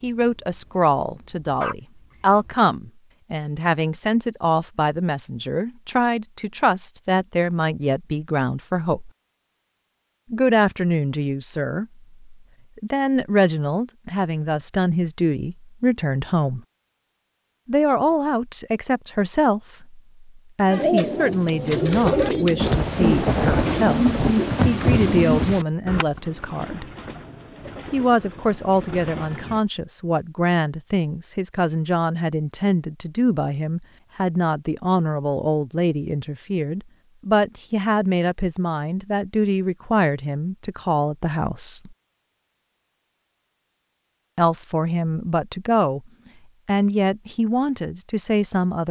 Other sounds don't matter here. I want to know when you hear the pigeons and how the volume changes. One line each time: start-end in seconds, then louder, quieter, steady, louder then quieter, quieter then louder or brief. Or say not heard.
20.6-29.6 quieter.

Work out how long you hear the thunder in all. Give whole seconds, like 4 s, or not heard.
3 s.